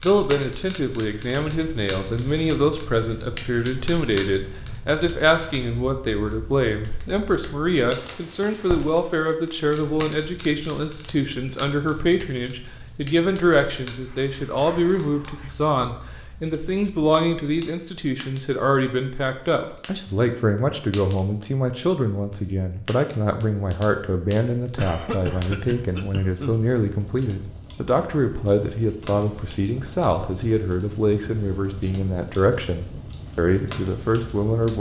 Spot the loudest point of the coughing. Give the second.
25 s.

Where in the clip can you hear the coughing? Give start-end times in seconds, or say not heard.
24.8-26.6.